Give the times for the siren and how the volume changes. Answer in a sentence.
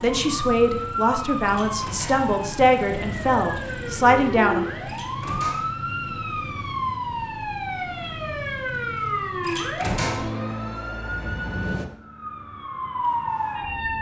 The siren can be heard from 0.0 to 13.9 s, at a steady volume.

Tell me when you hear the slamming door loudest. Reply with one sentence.
The loudest moment of the slamming door is at 10 seconds.